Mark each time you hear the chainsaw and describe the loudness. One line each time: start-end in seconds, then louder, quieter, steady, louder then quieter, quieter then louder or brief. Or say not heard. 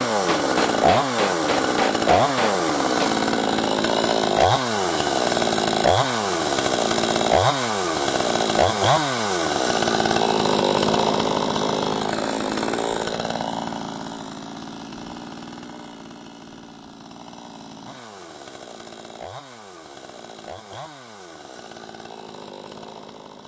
0.0-23.4 quieter.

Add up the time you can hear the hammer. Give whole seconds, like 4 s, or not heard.
3 s.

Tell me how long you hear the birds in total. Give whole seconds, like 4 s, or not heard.
not heard.